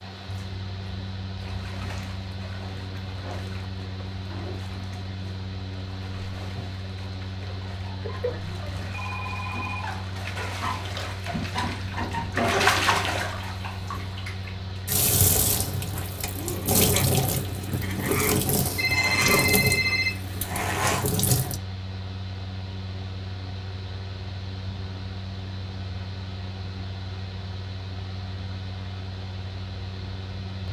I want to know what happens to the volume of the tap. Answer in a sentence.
The loudness of the tap goes up.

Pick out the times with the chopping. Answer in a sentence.
You can't hear the chopping here.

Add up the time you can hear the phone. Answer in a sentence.
The phone can be heard for 3 seconds in total.